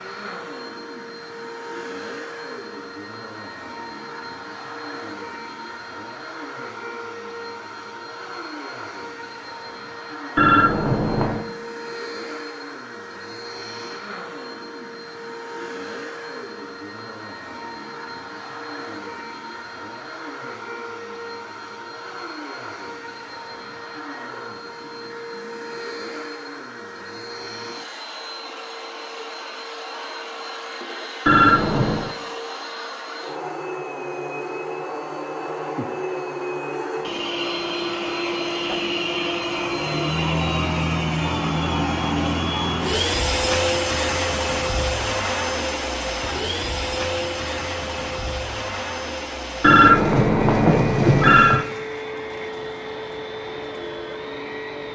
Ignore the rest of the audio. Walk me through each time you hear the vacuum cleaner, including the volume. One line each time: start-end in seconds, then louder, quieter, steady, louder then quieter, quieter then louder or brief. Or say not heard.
0.0-54.9 louder.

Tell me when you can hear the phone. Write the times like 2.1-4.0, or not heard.
10.3-11.4, 31.2-32.1, 49.6-51.6.